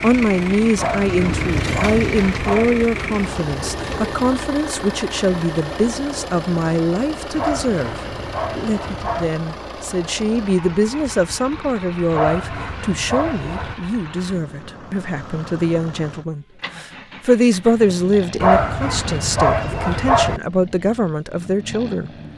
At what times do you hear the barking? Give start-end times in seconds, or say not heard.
0.8-2.8, 7.3-9.3, 12.1-13.8, 18.4-20.4.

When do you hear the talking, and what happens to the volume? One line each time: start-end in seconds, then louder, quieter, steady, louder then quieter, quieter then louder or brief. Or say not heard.
0.0-22.1 steady.